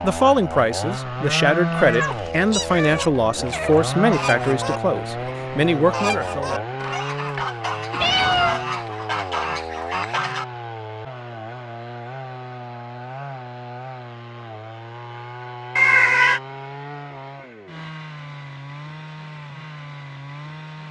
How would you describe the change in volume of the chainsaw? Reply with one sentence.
The volume of the chainsaw goes down.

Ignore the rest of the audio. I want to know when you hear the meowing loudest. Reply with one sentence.
The loudest moment of the meowing is at 16 seconds.